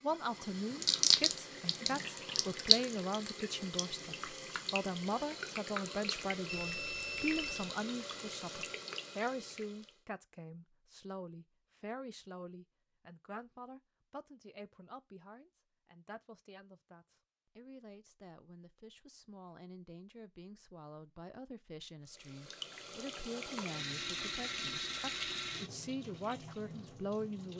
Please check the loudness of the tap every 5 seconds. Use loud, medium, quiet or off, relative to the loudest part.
loud, medium, off, off, medium, medium.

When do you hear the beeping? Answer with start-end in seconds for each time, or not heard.
6.5-7.7.